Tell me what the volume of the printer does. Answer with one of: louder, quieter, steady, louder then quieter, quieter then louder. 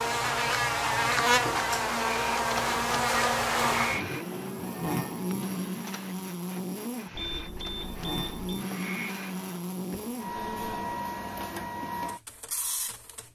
quieter then louder.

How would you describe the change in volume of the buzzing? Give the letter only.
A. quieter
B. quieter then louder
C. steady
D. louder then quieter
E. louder
A.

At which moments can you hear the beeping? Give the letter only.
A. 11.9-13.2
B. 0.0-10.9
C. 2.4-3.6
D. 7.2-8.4
D.